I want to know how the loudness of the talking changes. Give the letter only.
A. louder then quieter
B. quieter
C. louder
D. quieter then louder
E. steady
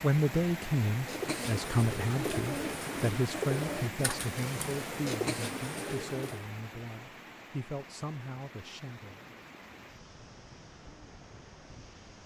B.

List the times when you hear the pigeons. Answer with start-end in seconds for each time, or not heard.
0.9-6.5.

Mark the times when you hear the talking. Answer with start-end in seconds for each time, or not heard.
0.0-9.4.